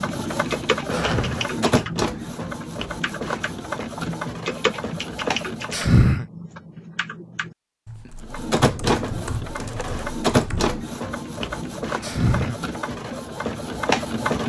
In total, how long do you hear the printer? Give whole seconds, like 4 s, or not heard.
12 s.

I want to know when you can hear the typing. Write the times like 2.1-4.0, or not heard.
0.3-10.8.